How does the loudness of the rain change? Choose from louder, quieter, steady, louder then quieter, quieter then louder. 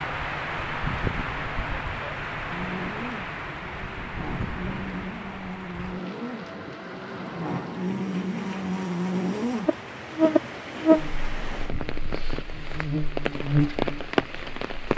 quieter then louder.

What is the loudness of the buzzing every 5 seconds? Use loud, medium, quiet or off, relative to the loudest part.
medium, medium, loud.